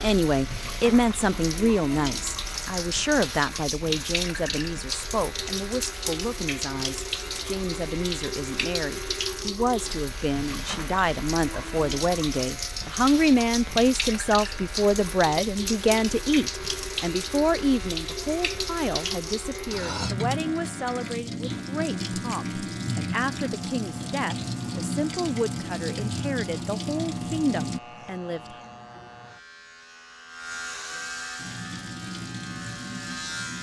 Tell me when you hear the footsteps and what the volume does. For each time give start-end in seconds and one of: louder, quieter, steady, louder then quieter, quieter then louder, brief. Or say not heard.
not heard.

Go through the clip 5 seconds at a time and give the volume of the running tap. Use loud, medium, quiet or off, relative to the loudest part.
loud, loud, loud, loud, loud, loud, medium.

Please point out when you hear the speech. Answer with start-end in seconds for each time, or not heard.
0.0-28.6.